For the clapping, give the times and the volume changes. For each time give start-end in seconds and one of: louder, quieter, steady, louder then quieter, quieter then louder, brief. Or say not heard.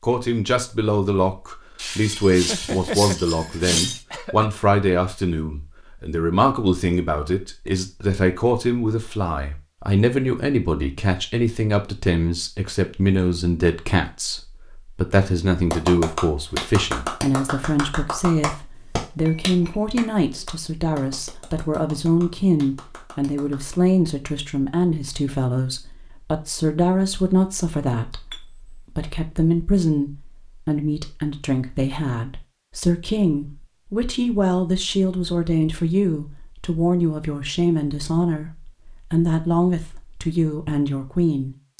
15.6-23.6 quieter.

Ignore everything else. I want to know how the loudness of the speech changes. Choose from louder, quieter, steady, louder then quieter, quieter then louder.
steady.